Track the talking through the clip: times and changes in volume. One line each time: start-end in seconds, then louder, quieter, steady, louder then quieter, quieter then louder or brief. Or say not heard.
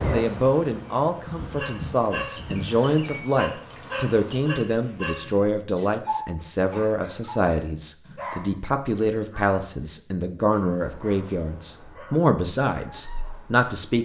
0.0-13.9 steady.